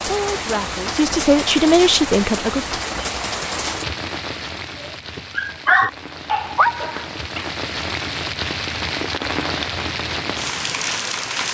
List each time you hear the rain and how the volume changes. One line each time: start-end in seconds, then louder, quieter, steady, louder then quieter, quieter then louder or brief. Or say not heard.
0.0-11.4 quieter then louder.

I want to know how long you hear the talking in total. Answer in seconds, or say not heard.
3 s.